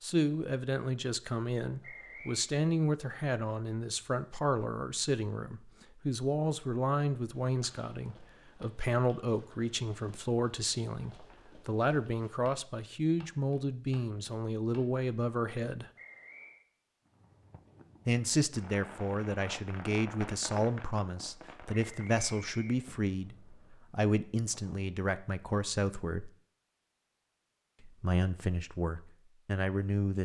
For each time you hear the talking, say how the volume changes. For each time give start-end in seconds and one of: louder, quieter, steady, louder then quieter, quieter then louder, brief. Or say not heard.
0.0-15.9 steady
18.1-26.3 steady
27.8-30.1 brief.